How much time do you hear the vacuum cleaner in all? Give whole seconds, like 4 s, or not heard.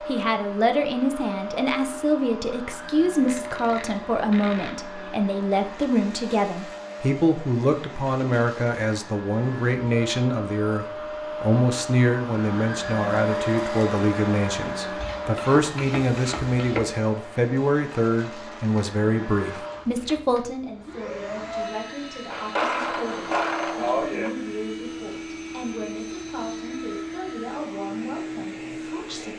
29 s.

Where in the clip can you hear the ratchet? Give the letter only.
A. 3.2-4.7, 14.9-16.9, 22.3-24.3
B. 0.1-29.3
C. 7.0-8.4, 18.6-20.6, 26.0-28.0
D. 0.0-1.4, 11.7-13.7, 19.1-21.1
A.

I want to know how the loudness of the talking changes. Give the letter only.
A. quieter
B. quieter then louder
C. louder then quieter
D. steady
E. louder
A.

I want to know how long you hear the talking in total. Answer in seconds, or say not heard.
29 s.